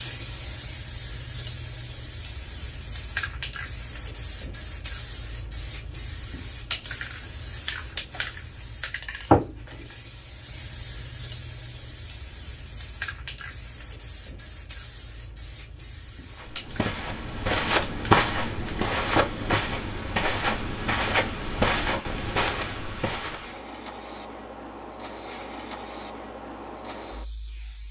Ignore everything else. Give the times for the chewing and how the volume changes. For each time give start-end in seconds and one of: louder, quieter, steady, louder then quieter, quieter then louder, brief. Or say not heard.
not heard.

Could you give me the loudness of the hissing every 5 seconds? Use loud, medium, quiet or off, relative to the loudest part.
medium, loud, medium, medium, medium, medium.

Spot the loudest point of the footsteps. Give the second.
18 s.